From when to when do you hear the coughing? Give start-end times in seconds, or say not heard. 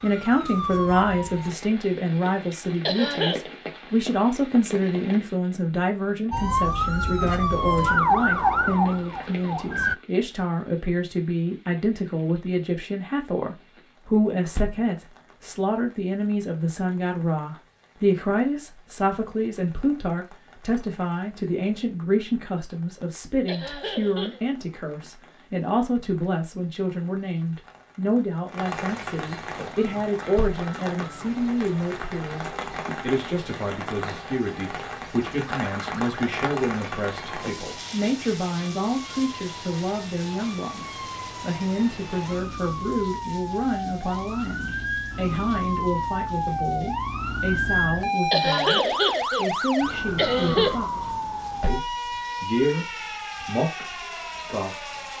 2.9-3.5, 23.4-24.4, 48.3-49.5, 50.1-50.8.